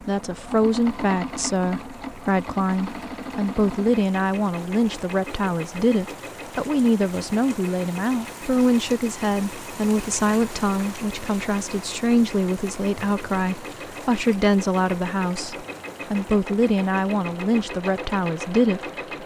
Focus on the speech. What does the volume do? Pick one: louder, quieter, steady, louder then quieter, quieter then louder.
steady.